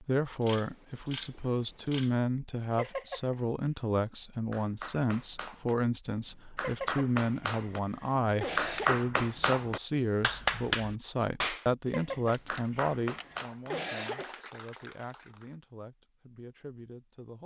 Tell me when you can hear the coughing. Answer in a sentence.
You can hear the coughing from 2.7 to 3.4 s, from 6.5 to 9.1 s and from 11.8 to 14.3 s.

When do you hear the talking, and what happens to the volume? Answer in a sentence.
The talking can be heard from 0.0 to 17.4 s, getting quieter.